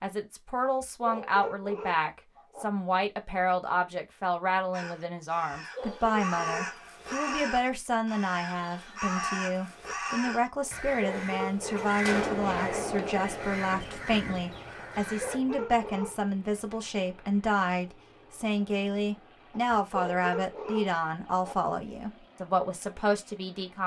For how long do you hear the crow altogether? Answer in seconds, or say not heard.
11 s.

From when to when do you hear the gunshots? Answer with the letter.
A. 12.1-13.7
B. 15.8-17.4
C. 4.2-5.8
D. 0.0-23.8
A.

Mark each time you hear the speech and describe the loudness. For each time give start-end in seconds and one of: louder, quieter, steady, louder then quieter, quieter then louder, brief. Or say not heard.
0.0-23.8 steady.